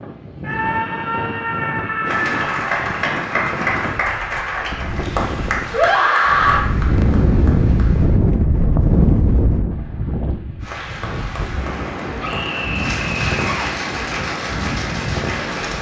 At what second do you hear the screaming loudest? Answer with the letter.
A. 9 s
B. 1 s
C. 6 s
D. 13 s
C.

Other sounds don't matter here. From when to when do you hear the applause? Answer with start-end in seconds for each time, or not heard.
2.0-8.2, 10.6-15.7.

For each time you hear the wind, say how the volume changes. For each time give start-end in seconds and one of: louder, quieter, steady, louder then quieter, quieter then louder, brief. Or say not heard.
0.0-15.7 louder then quieter.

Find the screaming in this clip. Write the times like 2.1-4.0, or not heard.
0.4-2.4, 5.7-6.7, 12.2-13.7.